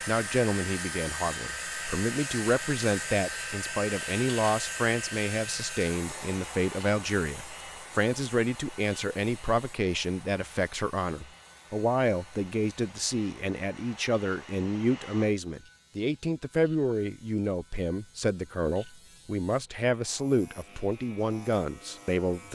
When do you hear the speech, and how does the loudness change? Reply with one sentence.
The speech can be heard from 0.1 to 22.5 s, at a steady volume.